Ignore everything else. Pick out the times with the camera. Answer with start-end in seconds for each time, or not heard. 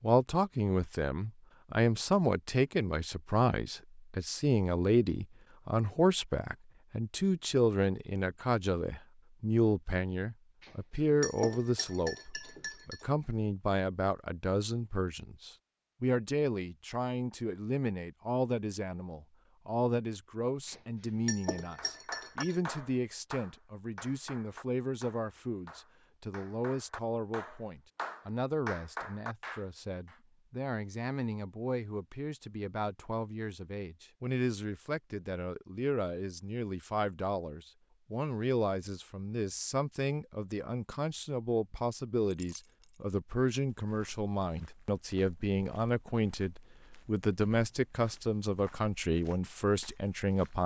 not heard.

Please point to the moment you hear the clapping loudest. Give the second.
29 s.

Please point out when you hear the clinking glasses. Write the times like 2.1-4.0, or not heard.
10.6-13.1, 20.6-22.6, 42.3-43.0.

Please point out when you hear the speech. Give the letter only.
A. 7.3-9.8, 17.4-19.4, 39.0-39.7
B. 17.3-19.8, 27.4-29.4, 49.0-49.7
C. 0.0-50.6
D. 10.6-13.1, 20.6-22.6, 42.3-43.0
C.